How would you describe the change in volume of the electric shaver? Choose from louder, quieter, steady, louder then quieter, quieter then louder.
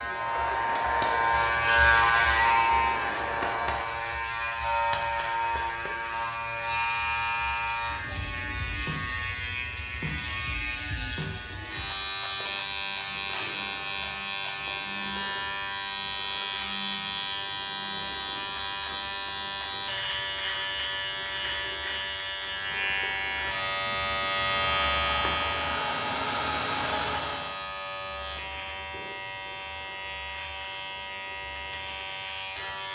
quieter.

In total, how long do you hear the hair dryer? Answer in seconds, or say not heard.
7 s.